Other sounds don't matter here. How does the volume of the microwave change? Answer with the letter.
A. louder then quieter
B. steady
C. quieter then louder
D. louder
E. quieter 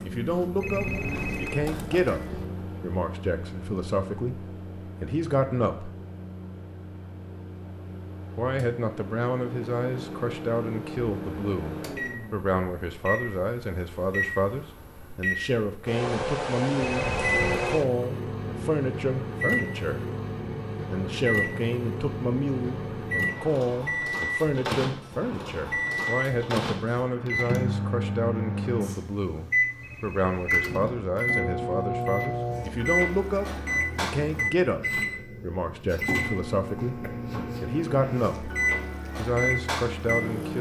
D.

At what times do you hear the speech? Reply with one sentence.
You can hear the speech from 0.0 to 6.0 s, from 8.3 to 20.0 s, from 20.9 to 38.5 s and from 39.1 to 40.5 s.